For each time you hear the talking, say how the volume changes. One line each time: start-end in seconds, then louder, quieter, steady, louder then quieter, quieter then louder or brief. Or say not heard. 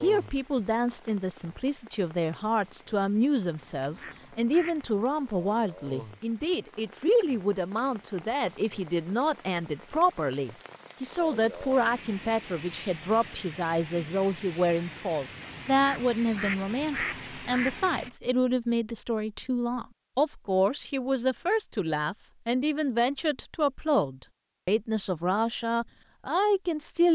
0.0-27.1 steady.